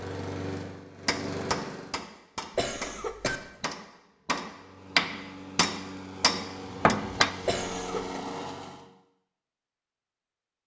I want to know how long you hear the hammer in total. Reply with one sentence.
The hammer can be heard for 6 seconds in total.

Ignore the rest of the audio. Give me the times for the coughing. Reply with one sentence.
The coughing can be heard from 2.5 to 3.4 s and from 7.5 to 8.2 s.